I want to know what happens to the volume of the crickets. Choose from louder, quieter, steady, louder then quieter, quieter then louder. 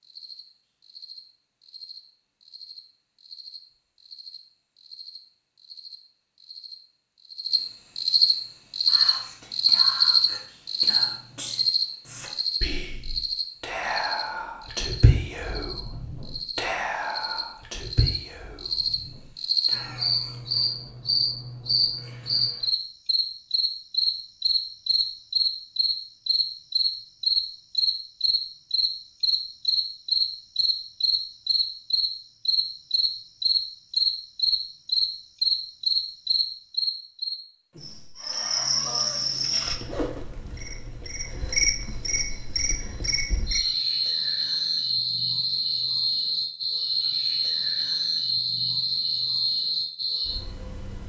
steady.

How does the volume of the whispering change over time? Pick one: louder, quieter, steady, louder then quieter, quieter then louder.
louder then quieter.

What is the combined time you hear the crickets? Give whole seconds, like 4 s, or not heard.
51 s.